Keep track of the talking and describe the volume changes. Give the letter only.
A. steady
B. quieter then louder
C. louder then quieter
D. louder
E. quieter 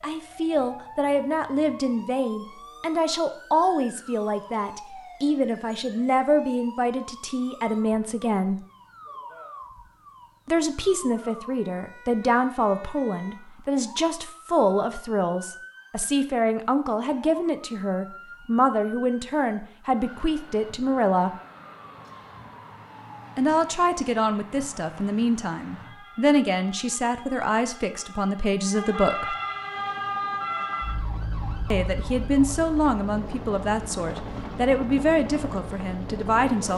A.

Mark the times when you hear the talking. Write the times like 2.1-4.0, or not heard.
0.0-8.6, 10.4-21.3, 23.4-29.4, 31.7-36.7.